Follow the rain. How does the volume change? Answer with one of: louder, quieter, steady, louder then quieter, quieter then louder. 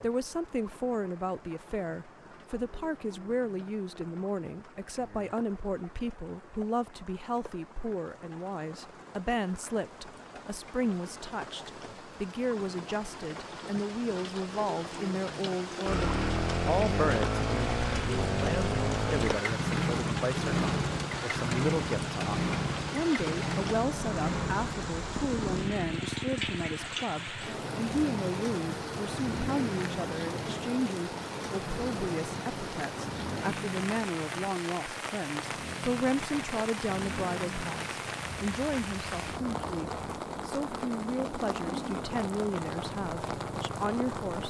louder.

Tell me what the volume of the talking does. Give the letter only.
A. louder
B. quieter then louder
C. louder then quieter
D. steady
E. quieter
D.